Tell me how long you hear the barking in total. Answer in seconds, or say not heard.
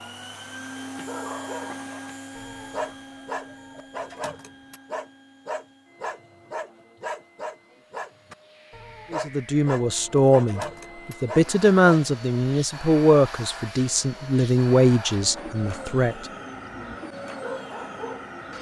13 s.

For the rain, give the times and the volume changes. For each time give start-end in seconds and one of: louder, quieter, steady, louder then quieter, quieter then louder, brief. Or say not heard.
not heard.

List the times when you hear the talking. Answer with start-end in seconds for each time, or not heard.
9.1-16.2.